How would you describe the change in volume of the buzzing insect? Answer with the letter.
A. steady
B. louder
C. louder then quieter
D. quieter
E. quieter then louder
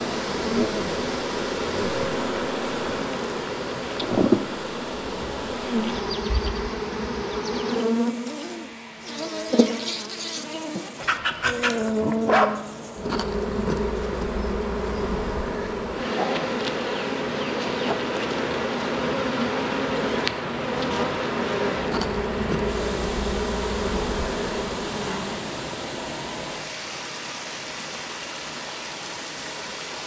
A.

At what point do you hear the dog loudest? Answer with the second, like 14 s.
12 s.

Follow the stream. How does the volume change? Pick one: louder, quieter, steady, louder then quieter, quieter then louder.
quieter then louder.